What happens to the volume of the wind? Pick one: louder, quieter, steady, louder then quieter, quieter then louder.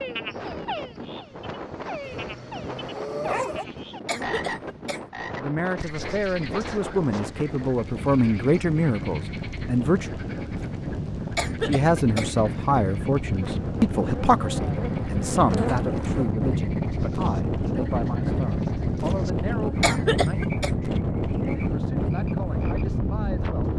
louder.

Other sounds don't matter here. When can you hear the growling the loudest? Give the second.
3 s.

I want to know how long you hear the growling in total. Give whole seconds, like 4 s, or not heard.
2 s.